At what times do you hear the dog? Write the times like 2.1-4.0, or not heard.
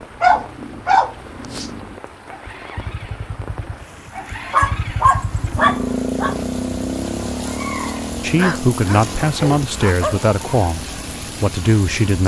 0.2-1.7, 4.5-6.3, 8.2-10.2.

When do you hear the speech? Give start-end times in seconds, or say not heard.
8.2-12.2.